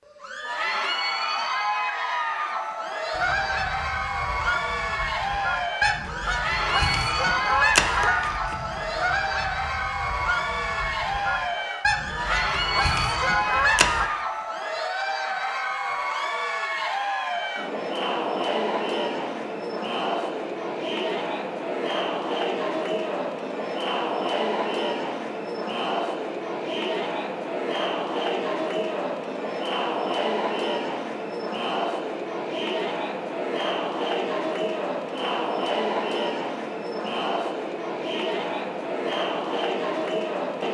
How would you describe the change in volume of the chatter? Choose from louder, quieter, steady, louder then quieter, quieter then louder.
steady.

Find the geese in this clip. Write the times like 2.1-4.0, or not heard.
3.1-14.1.